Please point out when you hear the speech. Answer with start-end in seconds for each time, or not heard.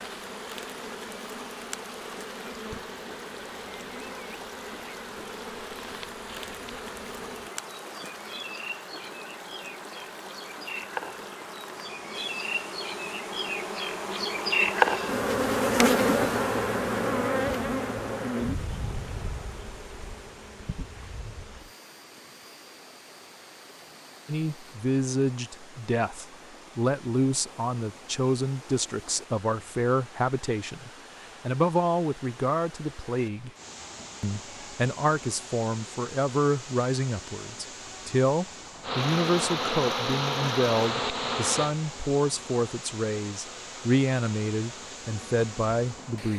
24.2-33.5, 34.2-46.3.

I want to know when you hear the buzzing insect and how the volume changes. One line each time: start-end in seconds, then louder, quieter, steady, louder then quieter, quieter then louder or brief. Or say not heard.
0.0-24.8 louder then quieter
38.8-46.2 quieter.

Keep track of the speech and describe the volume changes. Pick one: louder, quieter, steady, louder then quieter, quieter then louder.
steady.